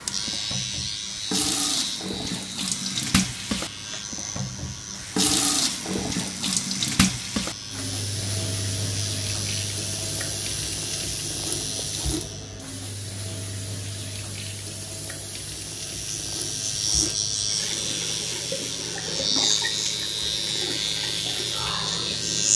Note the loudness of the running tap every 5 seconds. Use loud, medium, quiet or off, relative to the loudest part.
loud, loud, medium, medium, medium.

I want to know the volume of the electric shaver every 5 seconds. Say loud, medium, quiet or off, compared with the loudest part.
medium, medium, medium, loud, loud.